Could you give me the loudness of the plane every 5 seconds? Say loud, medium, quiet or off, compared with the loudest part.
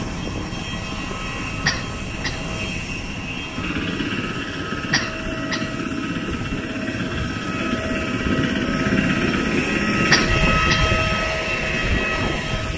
medium, loud, loud.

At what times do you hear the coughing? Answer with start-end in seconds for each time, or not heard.
1.6-2.5, 4.9-5.8, 10.1-10.9.